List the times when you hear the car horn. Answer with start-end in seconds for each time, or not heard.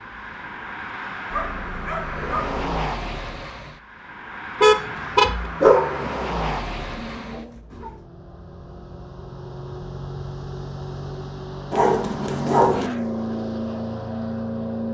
4.6-5.5.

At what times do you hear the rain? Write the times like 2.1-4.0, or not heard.
not heard.